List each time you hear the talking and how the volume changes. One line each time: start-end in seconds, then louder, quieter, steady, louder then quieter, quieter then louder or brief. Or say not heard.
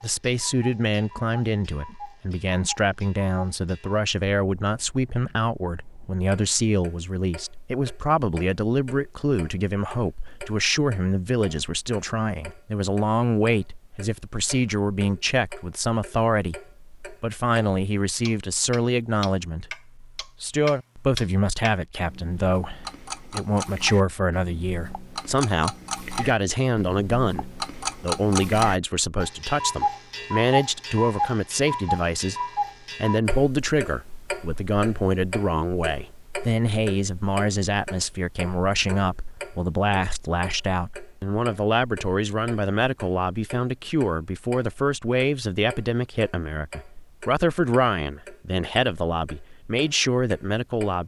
0.0-51.0 steady.